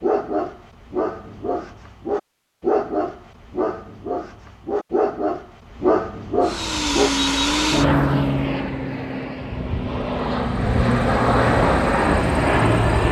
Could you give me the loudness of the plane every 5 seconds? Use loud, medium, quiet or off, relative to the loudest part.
off, loud, loud.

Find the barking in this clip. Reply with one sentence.
The barking can be heard from 0.0 to 7.1 s.